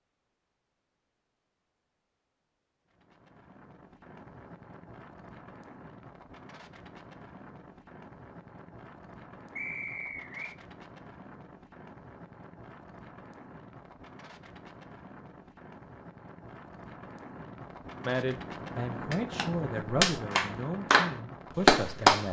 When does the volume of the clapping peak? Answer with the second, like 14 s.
22 s.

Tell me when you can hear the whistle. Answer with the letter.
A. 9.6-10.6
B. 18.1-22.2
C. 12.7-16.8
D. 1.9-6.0
A.